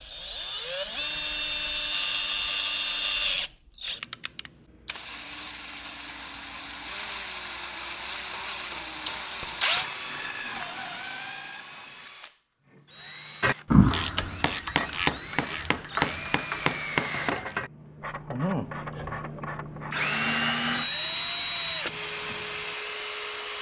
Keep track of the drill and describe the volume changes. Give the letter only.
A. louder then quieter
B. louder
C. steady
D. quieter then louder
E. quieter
D.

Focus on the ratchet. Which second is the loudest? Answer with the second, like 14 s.
14 s.